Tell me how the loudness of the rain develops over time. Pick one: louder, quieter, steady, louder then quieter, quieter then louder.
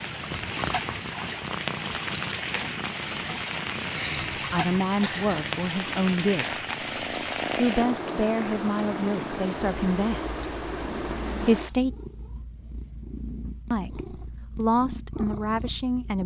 steady.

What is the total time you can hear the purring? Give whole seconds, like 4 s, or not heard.
16 s.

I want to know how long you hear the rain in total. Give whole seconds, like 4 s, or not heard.
12 s.